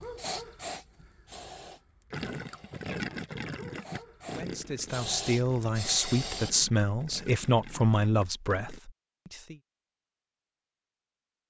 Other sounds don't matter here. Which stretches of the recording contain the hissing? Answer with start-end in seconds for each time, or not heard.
0.0-6.5.